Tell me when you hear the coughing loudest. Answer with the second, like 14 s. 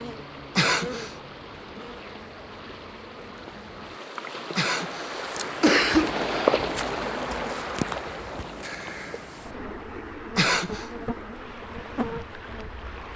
6 s.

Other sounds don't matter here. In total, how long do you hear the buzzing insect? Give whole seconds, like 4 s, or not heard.
13 s.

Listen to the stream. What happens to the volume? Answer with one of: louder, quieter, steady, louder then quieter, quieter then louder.
louder then quieter.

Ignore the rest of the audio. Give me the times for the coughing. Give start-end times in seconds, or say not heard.
0.6-1.1, 4.5-6.2, 10.3-10.8.